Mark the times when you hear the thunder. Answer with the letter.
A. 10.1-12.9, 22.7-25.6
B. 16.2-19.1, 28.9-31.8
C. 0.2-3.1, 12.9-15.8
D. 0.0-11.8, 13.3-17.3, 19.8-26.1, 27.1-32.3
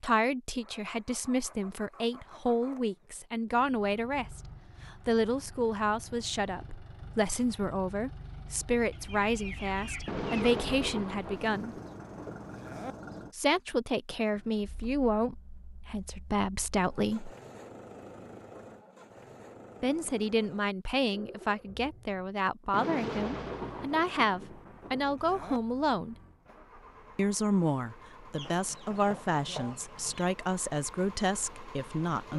A.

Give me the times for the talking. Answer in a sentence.
The talking can be heard from 0.0 to 11.8 s, from 13.3 to 17.3 s, from 19.8 to 26.1 s and from 27.1 to 32.3 s.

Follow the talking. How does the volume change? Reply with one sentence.
The volume of the talking stays about the same.